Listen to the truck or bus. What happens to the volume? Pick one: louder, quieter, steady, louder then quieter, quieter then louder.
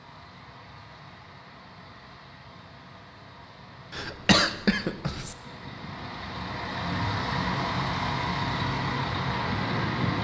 louder.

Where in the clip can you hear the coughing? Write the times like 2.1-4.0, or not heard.
3.9-5.3.